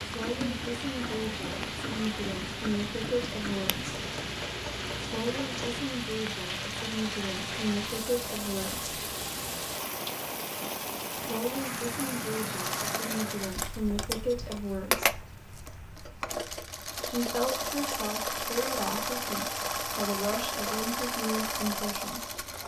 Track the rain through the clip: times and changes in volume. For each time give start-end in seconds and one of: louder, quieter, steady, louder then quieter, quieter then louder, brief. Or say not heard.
0.0-22.6 quieter.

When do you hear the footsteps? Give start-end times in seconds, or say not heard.
not heard.